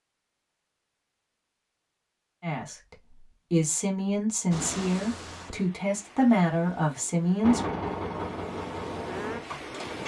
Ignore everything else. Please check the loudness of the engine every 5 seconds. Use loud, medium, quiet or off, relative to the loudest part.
off, loud.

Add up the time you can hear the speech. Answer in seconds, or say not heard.
5 s.